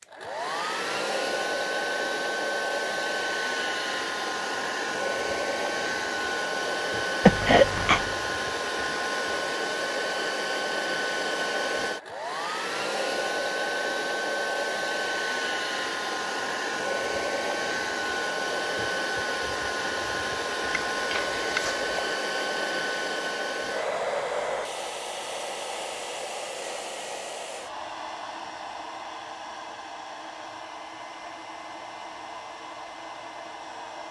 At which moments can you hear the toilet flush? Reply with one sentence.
The toilet flush can't be heard in this clip.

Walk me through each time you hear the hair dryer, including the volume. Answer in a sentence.
You can hear the hair dryer from 0.0 to 34.0 s, getting quieter.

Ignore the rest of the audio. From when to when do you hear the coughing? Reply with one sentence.
The coughing can be heard from 7.2 to 8.2 s and from 20.7 to 22.1 s.